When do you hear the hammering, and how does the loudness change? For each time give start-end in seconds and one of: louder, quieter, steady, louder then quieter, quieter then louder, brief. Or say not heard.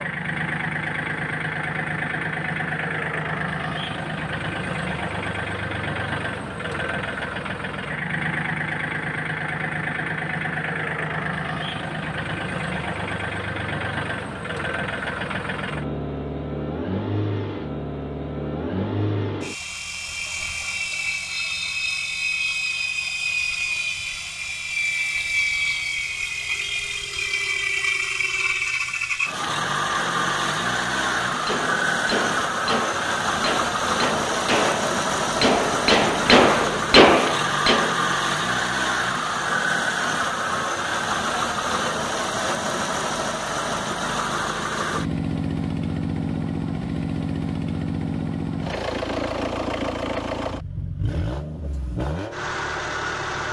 31.3-38.0 louder.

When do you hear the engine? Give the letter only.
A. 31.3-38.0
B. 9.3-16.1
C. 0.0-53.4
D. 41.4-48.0
C.